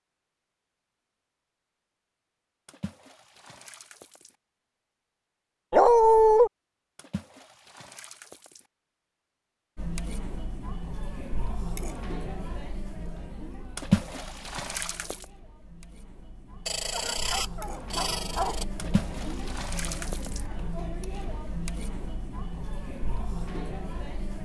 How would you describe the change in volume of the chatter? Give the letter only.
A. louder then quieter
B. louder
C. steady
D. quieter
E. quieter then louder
E.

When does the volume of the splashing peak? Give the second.
14 s.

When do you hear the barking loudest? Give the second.
6 s.